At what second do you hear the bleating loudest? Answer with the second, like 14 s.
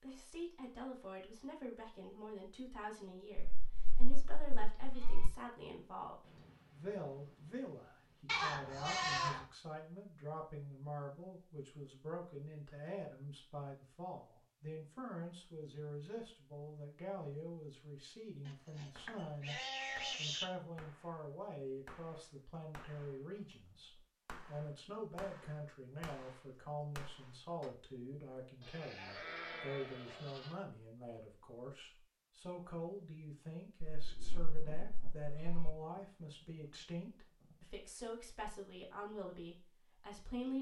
9 s.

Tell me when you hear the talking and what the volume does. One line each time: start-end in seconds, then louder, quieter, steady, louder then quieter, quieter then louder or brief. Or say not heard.
0.0-40.5 steady.